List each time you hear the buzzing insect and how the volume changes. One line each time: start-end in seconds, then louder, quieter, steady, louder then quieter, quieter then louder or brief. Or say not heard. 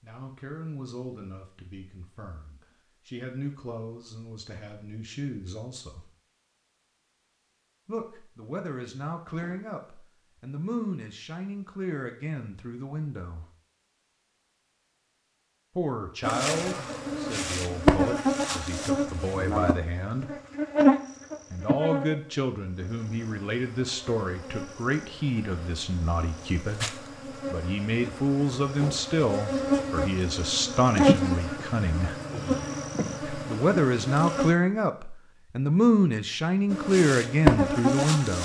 16.2-34.5 quieter then louder
36.7-38.4 brief.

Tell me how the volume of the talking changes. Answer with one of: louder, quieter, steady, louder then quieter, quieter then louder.
louder.